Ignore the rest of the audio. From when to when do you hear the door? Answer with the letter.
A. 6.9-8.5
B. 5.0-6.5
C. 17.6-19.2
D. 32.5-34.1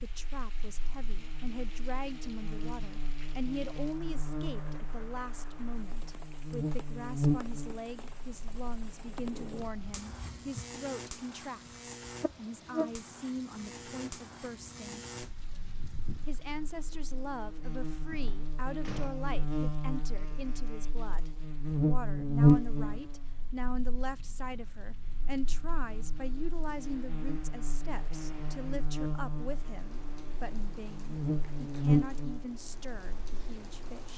C.